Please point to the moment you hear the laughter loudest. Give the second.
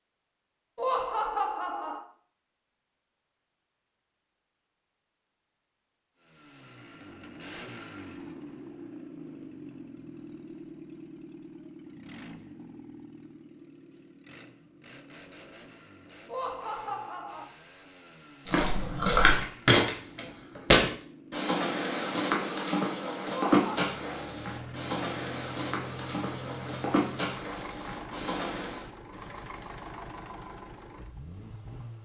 1 s.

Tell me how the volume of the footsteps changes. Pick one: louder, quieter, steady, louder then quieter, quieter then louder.
quieter.